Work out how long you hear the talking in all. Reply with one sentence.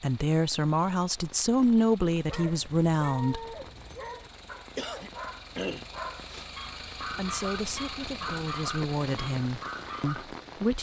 You can hear the talking for 7 seconds altogether.